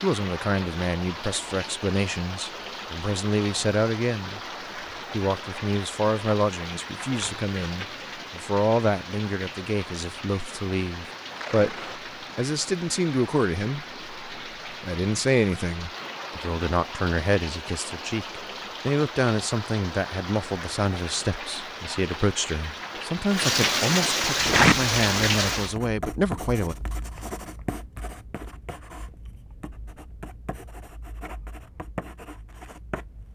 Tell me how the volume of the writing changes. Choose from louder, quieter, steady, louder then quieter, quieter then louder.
quieter then louder.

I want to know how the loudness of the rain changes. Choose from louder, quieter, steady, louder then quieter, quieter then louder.
louder.